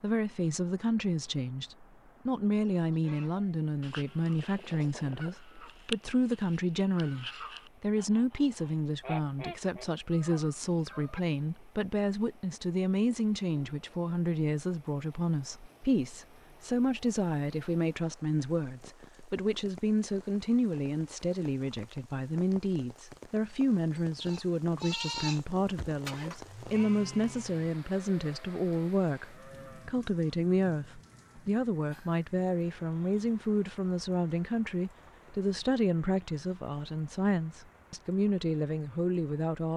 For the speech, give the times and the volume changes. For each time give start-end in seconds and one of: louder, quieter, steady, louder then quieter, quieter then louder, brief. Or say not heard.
0.0-39.7 steady.